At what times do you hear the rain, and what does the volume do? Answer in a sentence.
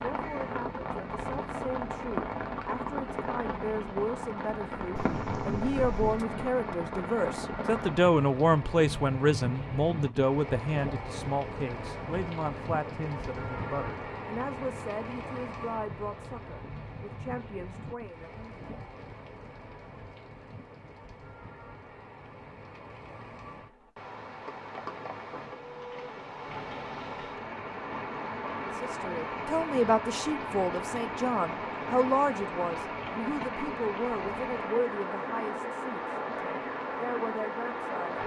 You can hear the rain from 0.0 to 38.2 s, getting quieter then louder.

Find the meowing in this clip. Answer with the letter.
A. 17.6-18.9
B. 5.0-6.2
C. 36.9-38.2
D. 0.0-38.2
B.